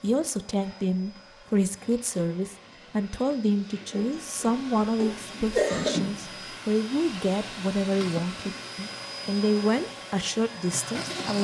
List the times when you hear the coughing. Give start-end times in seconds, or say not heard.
3.9-5.9.